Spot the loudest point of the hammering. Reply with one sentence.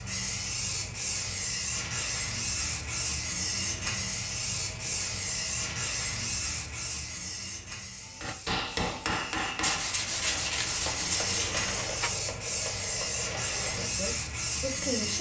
The loudest moment of the hammering is at 9 seconds.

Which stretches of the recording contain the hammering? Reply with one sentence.
You can hear the hammering from 8.1 to 13.9 s.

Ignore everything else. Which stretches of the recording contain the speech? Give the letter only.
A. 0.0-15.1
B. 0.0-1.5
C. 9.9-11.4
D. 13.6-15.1
D.